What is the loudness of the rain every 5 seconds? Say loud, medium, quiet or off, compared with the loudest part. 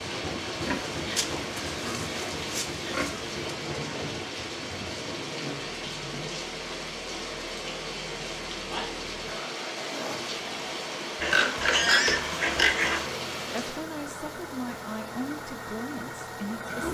loud, loud, loud, off.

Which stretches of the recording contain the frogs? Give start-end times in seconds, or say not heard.
not heard.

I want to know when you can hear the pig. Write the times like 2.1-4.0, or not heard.
0.6-3.5, 11.2-13.1.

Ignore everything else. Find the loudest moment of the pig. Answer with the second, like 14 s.
12 s.